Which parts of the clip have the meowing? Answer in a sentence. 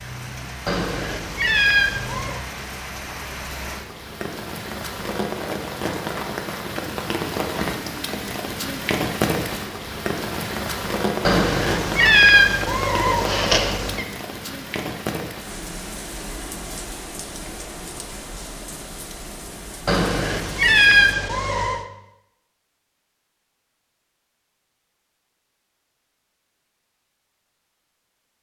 You can hear the meowing from 0.7 to 2.4 s, from 11.2 to 14.1 s and from 19.9 to 21.9 s.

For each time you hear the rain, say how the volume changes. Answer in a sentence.
The rain can be heard from 0.0 to 20.9 s, getting louder then quieter.